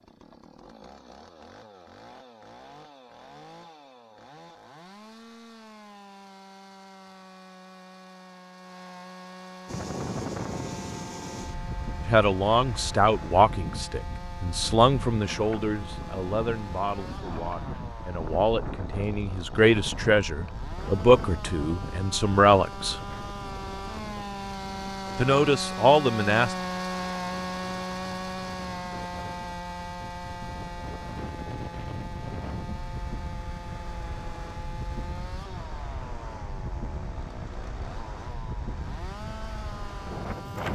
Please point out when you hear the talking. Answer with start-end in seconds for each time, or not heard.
12.1-23.0, 25.1-26.6.